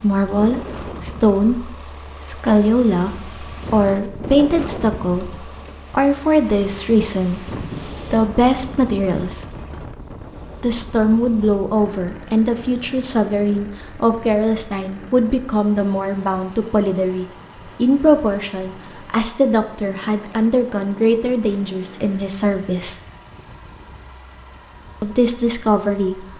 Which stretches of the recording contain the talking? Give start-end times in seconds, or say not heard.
0.0-7.5, 8.1-9.4, 10.6-23.0, 25.0-26.2.